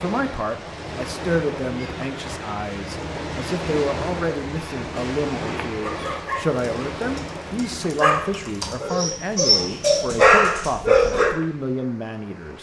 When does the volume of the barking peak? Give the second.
10 s.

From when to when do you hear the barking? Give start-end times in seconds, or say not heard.
5.8-11.3.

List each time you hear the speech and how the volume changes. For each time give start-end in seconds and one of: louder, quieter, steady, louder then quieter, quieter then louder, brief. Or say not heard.
0.0-12.5 steady.